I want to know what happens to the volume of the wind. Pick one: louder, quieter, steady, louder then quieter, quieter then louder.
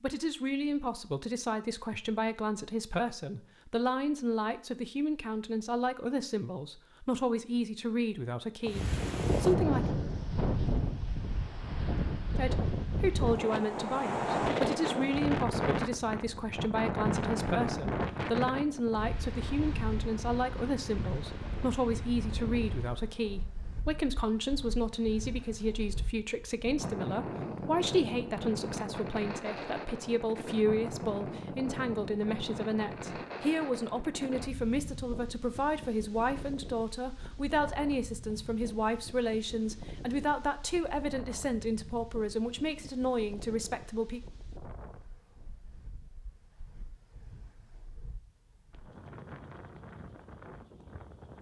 quieter.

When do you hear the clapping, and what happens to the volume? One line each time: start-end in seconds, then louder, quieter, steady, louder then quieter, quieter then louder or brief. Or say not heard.
not heard.